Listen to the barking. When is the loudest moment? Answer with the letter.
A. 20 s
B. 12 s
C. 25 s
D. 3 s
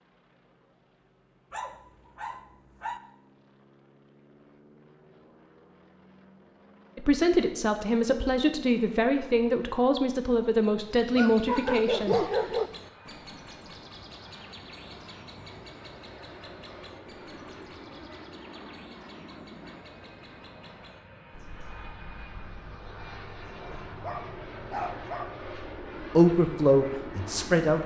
B.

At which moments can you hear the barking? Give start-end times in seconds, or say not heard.
1.5-3.0, 11.2-12.7, 24.0-25.4.